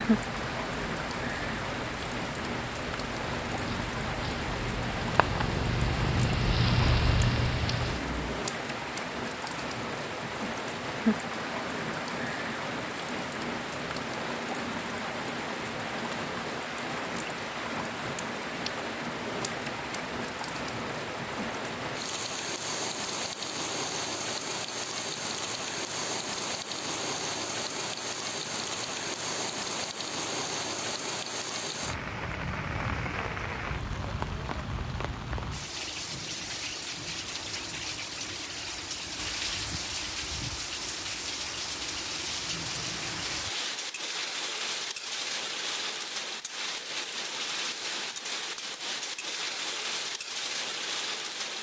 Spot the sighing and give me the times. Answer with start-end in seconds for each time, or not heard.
not heard.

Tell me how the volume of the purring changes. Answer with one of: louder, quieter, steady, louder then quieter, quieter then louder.
louder.